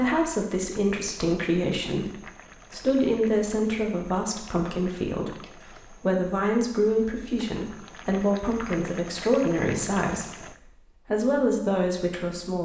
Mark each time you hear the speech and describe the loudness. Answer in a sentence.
The speech can be heard from 0.0 to 12.6 s, at a steady volume.